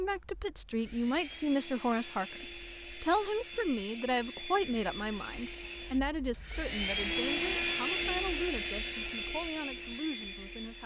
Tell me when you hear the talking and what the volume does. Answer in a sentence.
The talking can be heard from 0.0 to 10.8 s, getting quieter.